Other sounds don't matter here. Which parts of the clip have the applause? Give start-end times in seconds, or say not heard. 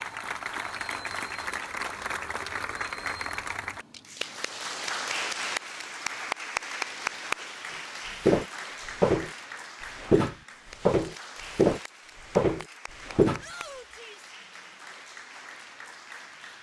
0.0-16.5.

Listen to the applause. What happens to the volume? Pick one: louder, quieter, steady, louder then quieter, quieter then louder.
quieter.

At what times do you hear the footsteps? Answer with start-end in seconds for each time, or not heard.
8.2-13.4.